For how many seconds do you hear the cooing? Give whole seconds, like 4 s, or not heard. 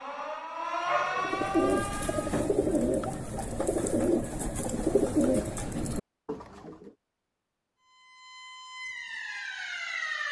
6 s.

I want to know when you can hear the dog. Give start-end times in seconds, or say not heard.
0.8-1.7.